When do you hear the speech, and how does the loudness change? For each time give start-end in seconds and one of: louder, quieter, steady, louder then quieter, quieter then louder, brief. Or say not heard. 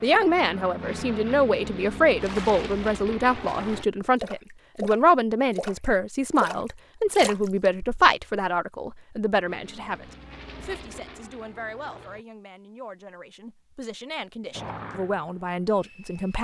0.0-16.4 quieter then louder.